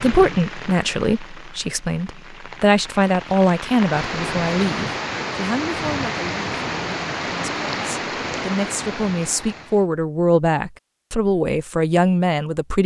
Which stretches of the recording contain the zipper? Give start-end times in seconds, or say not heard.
not heard.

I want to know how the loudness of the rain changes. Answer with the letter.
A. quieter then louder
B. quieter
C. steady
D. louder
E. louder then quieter
D.